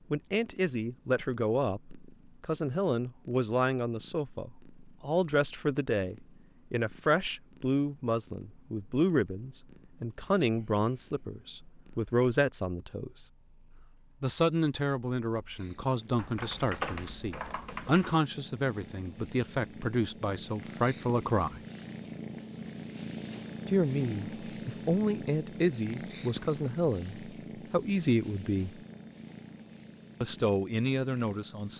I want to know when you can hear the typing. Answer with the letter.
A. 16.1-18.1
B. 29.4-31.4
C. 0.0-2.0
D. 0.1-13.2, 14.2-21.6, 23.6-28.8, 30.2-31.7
A.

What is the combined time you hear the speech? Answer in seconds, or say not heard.
27 s.